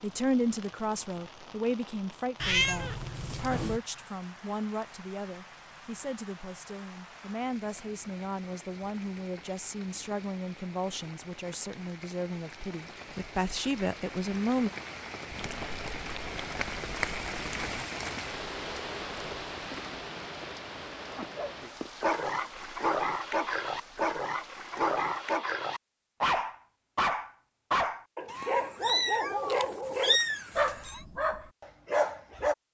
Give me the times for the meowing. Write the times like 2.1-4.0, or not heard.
2.4-3.8, 15.3-17.8, 28.2-31.0.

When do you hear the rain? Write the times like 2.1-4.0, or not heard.
0.0-25.4.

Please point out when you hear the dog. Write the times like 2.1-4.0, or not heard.
21.1-32.5.